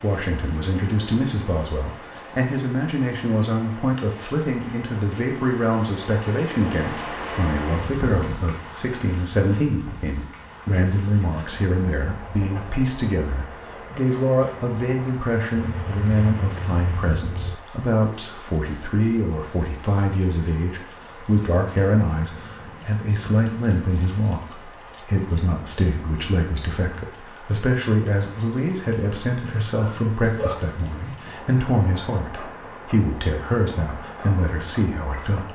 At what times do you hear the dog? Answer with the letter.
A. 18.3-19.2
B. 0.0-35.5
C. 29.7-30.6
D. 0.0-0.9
C.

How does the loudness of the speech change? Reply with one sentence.
The loudness of the speech stays about the same.